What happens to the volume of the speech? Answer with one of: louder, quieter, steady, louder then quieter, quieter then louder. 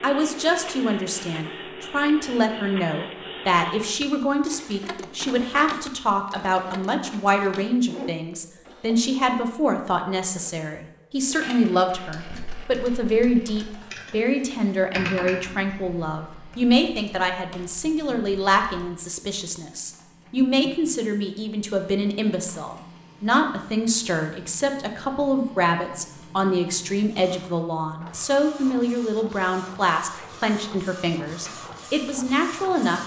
steady.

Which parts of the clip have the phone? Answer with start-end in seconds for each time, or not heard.
not heard.